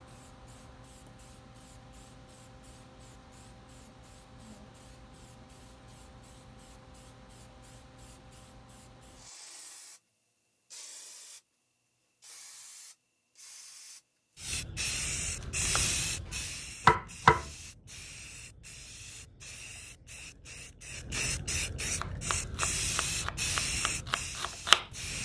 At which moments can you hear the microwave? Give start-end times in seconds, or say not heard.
not heard.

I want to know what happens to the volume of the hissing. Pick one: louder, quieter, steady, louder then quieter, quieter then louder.
louder.